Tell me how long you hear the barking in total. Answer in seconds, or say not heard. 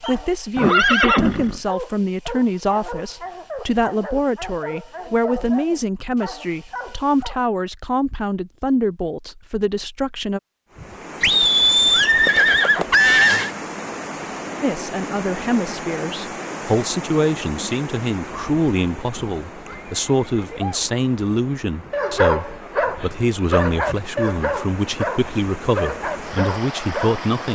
13 s.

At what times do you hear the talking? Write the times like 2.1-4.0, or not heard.
0.0-10.4, 14.6-27.5.